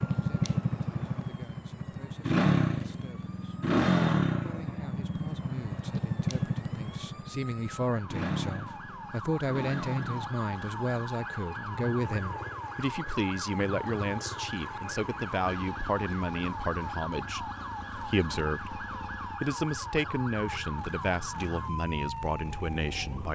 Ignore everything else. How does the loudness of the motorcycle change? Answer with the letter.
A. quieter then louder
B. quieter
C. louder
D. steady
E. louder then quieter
B.